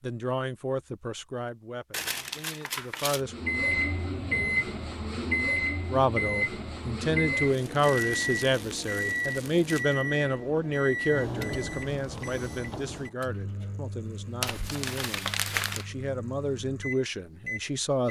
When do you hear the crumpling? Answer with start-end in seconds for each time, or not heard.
1.9-3.2, 7.5-10.1, 14.4-15.9.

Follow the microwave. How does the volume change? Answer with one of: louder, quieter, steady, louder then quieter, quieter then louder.
quieter.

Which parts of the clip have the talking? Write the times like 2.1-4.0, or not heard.
0.0-3.4, 5.9-18.0.